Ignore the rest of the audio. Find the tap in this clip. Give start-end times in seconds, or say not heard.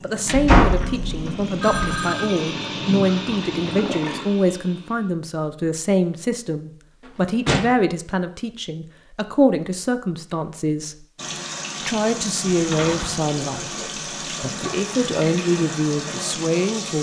0.0-4.2, 11.2-16.9.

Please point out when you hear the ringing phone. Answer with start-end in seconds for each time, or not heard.
1.6-2.5.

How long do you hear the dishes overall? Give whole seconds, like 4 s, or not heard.
not heard.